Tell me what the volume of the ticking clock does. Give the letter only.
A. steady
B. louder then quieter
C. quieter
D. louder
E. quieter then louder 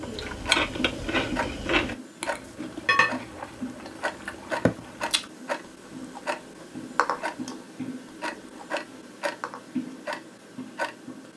A.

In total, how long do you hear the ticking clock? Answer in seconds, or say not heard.
11 s.